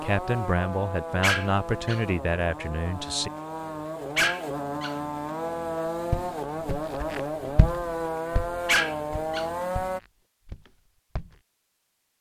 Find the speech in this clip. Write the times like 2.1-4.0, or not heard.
0.0-3.3.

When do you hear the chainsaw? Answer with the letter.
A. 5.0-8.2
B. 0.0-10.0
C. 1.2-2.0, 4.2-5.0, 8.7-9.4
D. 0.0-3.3
B.